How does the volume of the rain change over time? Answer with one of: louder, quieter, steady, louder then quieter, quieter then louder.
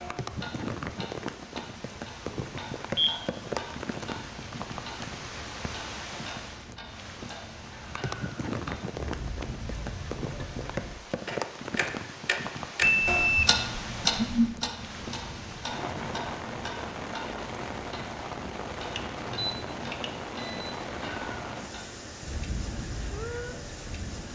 steady.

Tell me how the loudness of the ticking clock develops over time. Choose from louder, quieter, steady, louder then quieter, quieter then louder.
louder then quieter.